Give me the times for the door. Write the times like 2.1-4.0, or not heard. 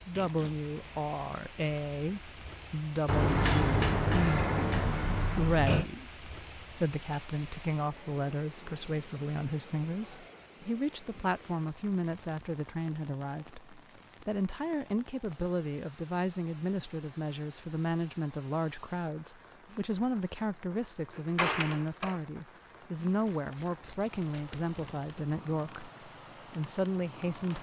3.0-5.8, 21.1-22.2.